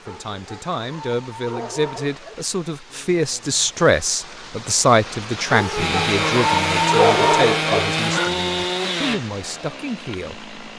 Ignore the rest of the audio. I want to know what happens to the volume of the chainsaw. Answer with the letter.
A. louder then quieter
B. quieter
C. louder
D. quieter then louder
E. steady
B.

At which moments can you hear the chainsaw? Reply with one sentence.
You can hear the chainsaw from 5.8 to 10.7 s.